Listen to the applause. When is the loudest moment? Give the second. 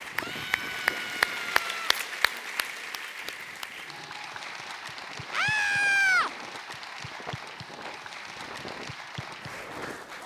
1 s.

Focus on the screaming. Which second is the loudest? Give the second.
6 s.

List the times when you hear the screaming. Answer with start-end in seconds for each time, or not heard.
0.1-1.9, 5.3-6.3.